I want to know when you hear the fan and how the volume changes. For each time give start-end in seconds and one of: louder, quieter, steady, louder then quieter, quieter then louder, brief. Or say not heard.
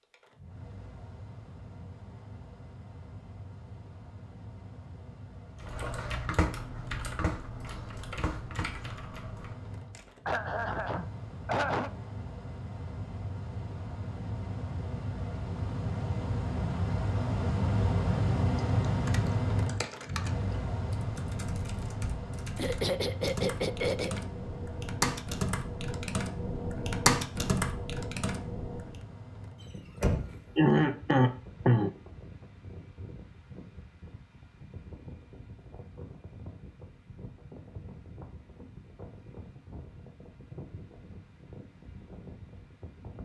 0.0-43.2 louder then quieter.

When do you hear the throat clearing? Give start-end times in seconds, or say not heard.
10.2-11.9, 22.6-24.2, 30.1-31.9.